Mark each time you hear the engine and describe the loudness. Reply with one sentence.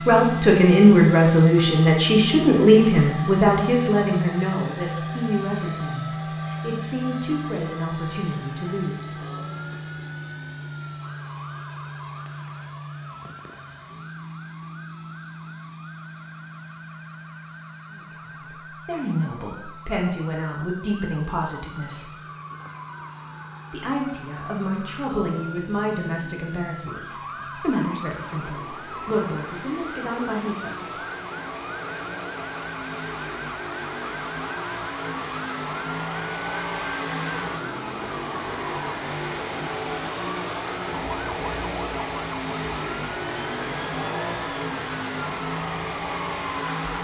The engine can be heard from 0.0 to 46.9 s, getting quieter then louder.